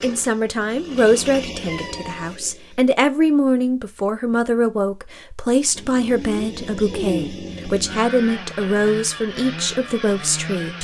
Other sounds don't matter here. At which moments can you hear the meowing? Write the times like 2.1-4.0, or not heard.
1.6-2.4, 5.8-7.3.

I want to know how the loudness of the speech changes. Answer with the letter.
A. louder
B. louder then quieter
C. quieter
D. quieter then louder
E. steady
E.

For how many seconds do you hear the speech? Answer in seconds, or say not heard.
11 s.